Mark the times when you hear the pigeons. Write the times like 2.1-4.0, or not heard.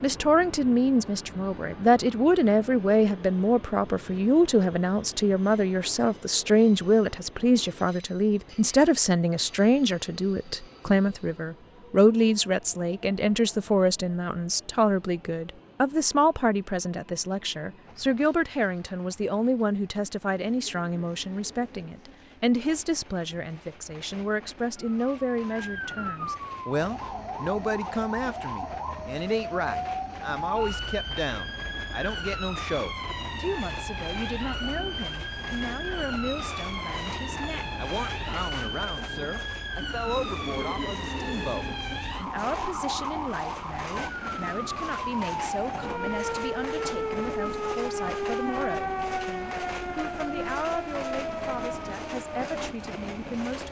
not heard.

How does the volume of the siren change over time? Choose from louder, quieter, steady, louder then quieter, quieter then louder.
steady.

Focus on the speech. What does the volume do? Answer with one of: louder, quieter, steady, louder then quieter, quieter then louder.
quieter.